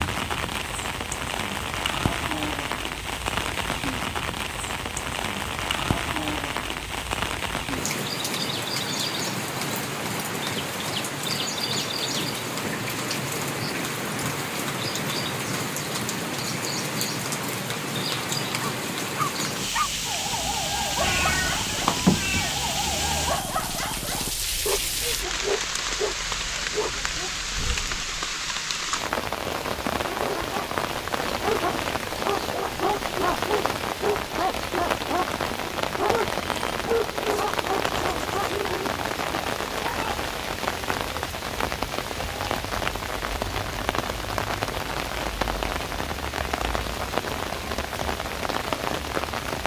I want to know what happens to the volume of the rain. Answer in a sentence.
The volume of the rain stays about the same.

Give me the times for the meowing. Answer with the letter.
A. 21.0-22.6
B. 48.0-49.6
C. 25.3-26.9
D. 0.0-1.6
A.